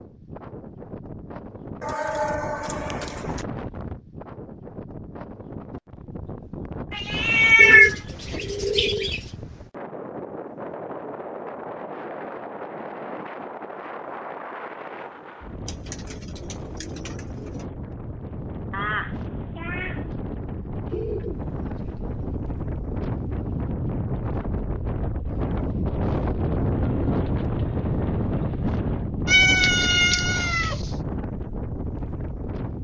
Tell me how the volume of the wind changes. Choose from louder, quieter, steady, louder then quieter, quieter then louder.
louder.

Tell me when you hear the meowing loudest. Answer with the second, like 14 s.
8 s.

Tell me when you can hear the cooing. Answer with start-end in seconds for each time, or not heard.
1.8-3.5, 7.5-9.3, 15.7-17.6, 20.9-22.4, 26.8-29.1.